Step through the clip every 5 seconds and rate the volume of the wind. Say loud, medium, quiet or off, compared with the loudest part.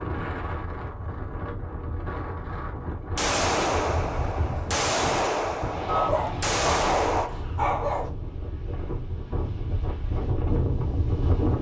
medium, medium, loud.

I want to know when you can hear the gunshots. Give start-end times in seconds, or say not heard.
3.1-7.3.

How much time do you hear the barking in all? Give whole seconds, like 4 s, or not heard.
2 s.